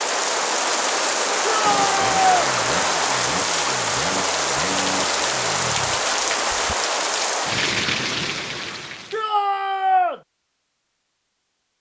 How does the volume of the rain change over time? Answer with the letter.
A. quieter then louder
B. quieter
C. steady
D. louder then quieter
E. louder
C.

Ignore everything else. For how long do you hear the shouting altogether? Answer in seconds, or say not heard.
2 s.